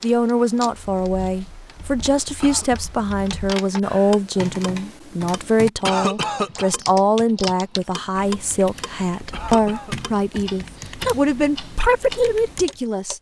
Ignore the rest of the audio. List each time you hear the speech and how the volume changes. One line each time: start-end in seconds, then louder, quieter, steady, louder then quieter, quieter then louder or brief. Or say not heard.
0.0-13.1 steady.